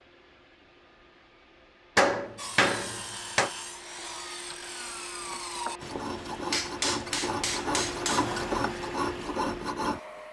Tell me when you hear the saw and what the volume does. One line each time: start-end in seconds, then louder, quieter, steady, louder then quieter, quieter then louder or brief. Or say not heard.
2.4-10.0 louder.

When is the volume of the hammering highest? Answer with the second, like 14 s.
2 s.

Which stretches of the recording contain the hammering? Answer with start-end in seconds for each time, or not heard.
1.9-3.5, 5.8-8.3.